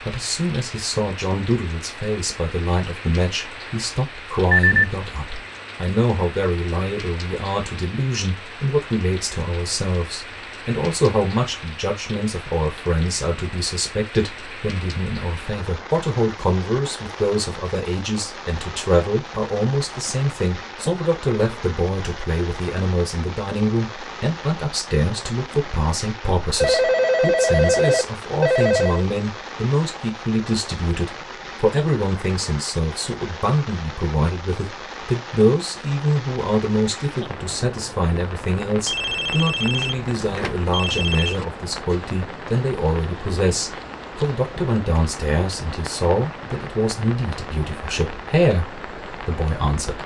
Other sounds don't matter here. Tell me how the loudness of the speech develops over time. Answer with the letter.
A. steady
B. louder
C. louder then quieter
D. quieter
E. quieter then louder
A.